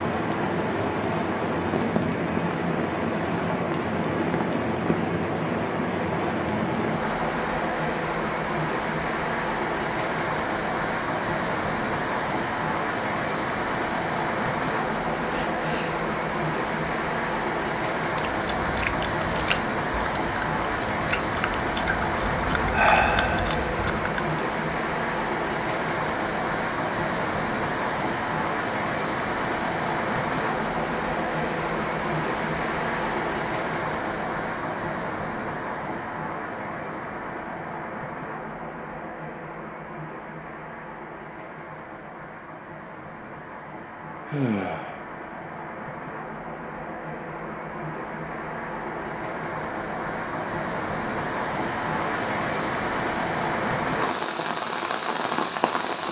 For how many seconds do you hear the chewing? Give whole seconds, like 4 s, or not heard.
6 s.